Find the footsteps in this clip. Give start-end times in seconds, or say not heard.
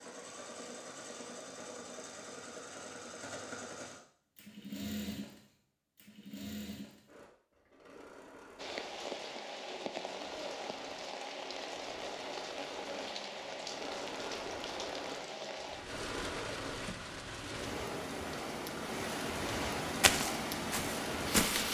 20.0-21.7.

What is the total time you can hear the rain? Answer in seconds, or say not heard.
13 s.